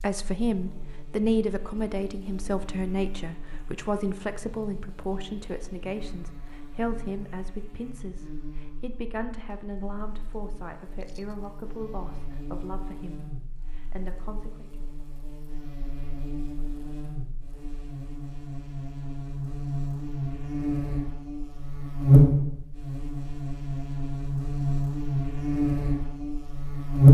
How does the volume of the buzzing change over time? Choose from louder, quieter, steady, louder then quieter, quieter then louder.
louder.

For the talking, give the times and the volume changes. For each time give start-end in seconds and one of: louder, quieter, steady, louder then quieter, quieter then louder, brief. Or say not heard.
0.0-14.8 quieter.